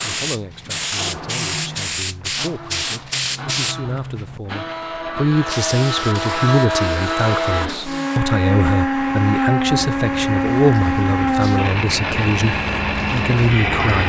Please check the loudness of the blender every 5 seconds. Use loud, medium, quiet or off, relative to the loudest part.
quiet, loud, loud.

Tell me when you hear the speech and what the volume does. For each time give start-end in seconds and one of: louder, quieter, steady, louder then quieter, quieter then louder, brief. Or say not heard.
0.0-14.0 louder.